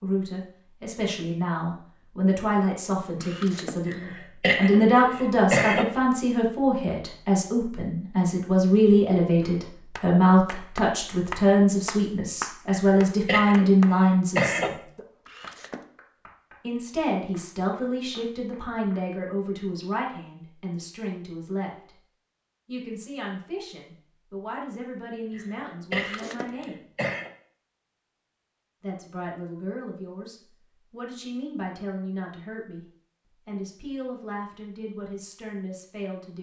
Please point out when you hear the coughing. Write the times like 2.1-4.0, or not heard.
3.9-5.8, 12.7-14.7, 25.4-27.3.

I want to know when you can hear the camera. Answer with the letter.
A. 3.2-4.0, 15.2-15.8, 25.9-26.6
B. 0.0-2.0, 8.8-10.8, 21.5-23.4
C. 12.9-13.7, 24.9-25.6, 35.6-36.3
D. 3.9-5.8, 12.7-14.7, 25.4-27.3
A.